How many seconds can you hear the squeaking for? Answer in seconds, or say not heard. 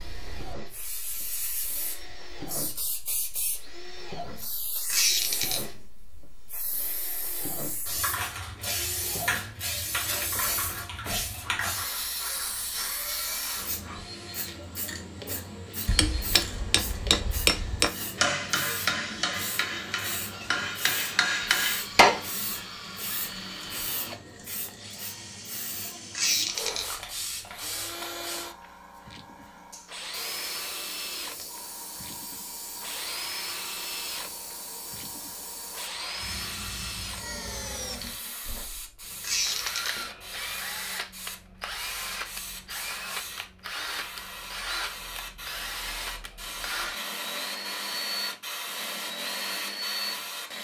2 s.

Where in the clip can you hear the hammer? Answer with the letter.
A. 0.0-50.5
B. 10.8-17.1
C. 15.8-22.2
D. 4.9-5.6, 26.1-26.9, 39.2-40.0
C.